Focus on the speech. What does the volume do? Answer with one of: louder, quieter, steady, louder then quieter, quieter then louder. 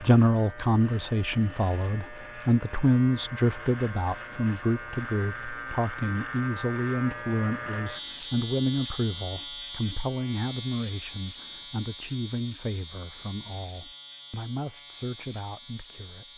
quieter.